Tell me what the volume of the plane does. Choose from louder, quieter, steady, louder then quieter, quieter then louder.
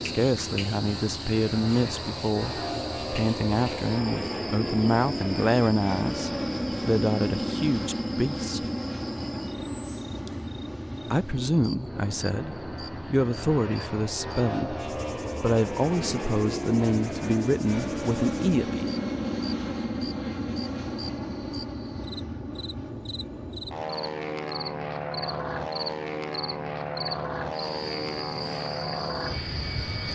steady.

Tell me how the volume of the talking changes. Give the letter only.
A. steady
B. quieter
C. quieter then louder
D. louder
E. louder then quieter
A.